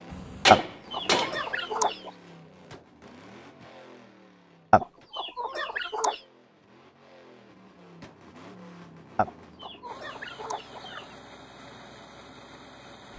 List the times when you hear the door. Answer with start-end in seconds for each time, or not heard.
not heard.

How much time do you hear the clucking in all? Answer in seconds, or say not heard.
5 s.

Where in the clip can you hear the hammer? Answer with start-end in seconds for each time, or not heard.
0.1-1.4.